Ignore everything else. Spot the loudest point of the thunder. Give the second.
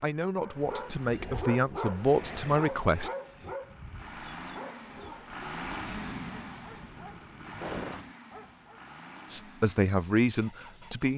6 s.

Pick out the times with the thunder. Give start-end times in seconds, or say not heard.
5.8-7.7.